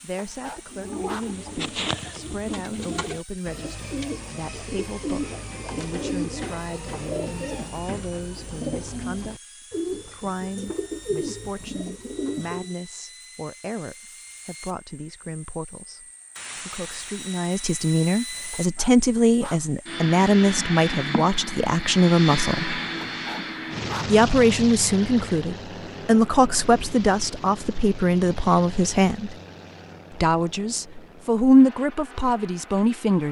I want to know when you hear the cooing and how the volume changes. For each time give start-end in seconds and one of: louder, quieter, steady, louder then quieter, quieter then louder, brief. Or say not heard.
0.7-12.8 steady.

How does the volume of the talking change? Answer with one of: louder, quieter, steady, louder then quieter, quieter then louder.
louder.